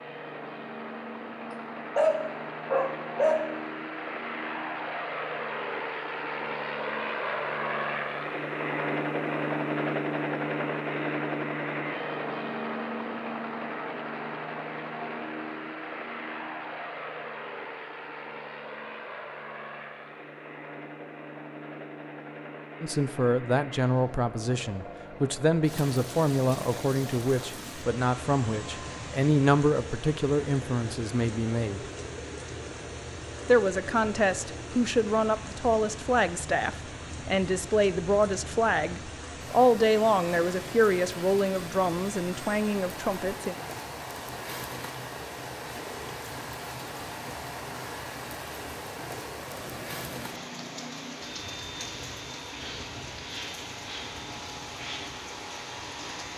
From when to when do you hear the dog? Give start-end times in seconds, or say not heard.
1.4-3.5.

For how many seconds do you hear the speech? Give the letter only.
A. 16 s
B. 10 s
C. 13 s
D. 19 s
D.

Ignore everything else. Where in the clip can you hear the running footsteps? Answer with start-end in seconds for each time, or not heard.
not heard.